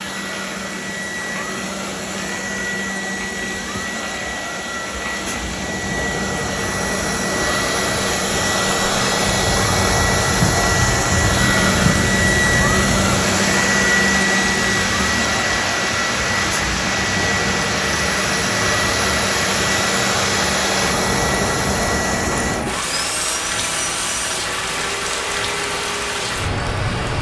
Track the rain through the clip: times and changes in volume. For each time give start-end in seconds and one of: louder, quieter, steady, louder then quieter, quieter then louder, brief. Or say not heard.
0.0-27.1 louder.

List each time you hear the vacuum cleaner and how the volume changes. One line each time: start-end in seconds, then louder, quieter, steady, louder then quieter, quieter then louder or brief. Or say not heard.
0.0-27.1 louder then quieter.